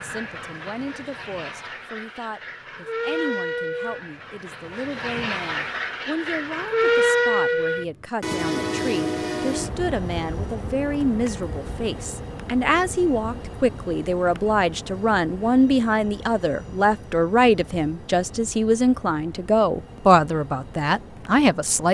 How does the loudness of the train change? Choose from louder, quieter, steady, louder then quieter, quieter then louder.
louder then quieter.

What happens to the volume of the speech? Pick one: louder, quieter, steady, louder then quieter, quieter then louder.
louder.